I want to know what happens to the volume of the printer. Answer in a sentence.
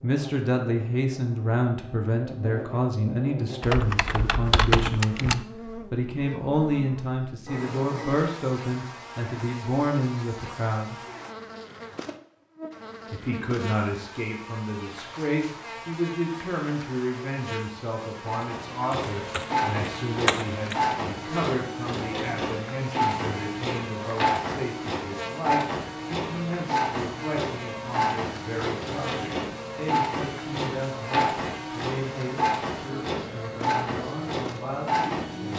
The loudness of the printer stays about the same.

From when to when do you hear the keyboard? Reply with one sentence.
You can hear the keyboard from 3.6 to 5.5 s and from 18.9 to 20.9 s.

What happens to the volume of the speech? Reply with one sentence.
The volume of the speech goes down.